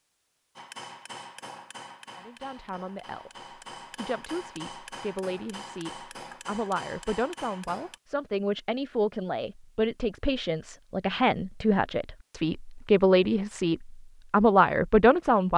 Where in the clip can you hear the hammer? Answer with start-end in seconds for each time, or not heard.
0.6-8.0.